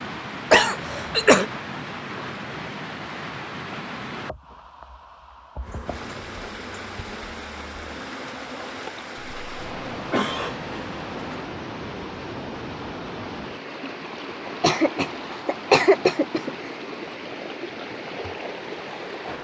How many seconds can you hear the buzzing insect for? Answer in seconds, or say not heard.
6 s.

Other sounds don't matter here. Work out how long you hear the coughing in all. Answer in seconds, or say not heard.
5 s.